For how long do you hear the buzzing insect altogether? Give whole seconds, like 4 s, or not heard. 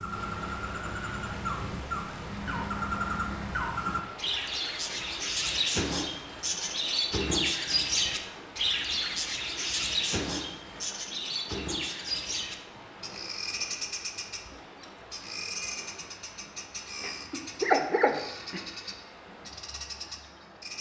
not heard.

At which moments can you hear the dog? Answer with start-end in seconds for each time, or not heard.
17.0-18.6.